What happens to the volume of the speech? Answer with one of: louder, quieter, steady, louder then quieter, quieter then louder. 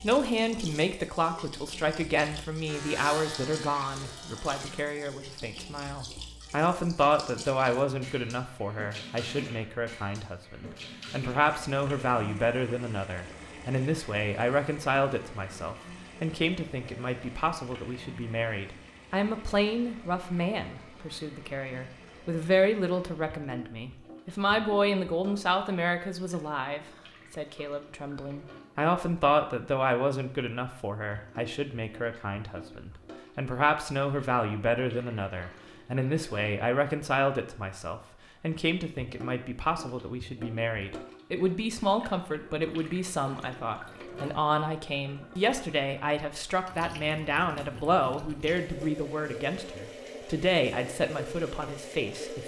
steady.